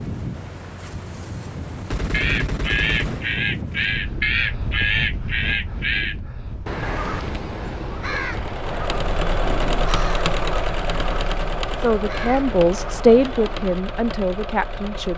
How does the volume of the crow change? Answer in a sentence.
The volume of the crow goes down.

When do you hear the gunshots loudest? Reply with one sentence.
The volume of the gunshots peaks at 2 seconds.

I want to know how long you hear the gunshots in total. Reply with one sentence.
You can hear the gunshots for 2 seconds altogether.